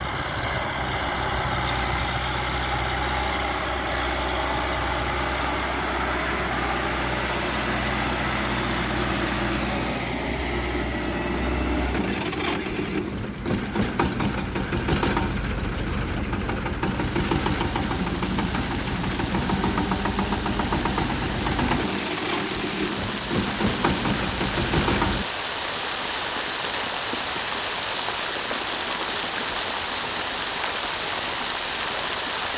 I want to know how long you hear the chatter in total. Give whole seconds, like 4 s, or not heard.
not heard.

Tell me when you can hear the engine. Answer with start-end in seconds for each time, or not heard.
0.0-25.2.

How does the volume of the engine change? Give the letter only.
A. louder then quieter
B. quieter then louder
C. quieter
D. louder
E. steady
E.